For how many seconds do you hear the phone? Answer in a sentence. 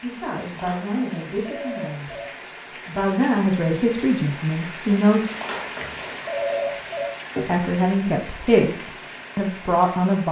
You can hear the phone for 4 seconds altogether.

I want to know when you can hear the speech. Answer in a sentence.
The speech can be heard from 0.0 to 2.1 s, from 2.9 to 5.2 s and from 7.5 to 10.2 s.